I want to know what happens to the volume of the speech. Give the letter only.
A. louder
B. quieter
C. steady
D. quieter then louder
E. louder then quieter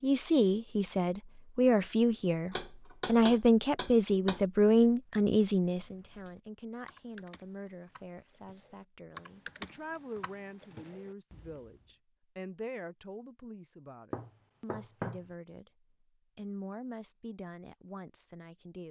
B.